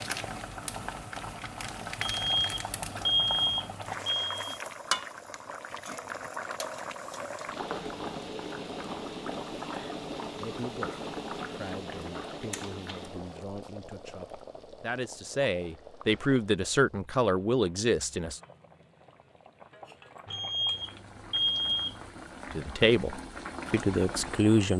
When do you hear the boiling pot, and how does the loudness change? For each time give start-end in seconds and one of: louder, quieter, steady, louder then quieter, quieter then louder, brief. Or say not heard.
0.0-24.7 quieter then louder.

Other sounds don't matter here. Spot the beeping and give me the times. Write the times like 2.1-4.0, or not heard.
2.0-4.6, 20.2-21.9.